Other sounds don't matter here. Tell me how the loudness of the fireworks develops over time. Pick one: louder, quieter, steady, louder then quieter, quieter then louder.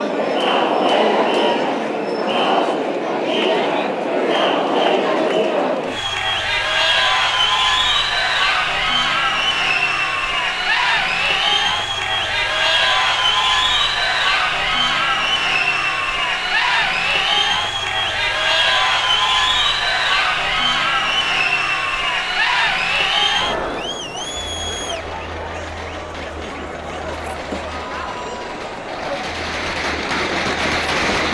louder.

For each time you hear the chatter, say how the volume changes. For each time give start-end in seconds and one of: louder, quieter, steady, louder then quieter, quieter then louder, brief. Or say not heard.
0.0-31.3 quieter.